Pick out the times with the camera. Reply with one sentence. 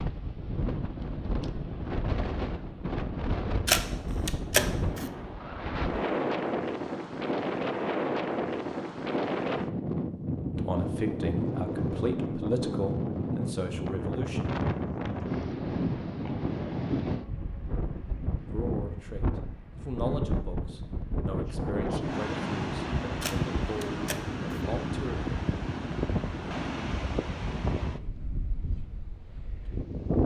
The camera can be heard from 3.6 to 5.0 s and from 23.2 to 24.6 s.